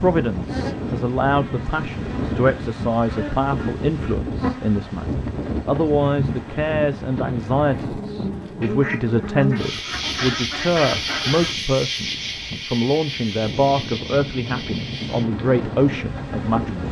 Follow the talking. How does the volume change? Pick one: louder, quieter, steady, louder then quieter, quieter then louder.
steady.